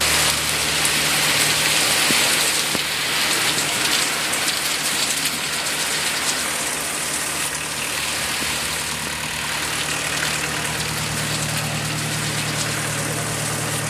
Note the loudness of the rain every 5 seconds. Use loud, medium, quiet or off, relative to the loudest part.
loud, medium, medium.